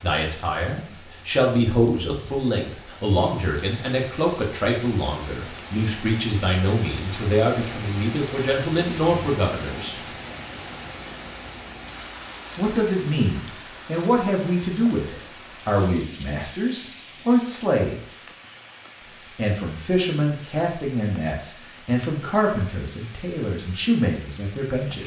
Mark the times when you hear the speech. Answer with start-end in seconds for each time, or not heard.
0.0-9.9, 12.6-18.2, 19.4-25.0.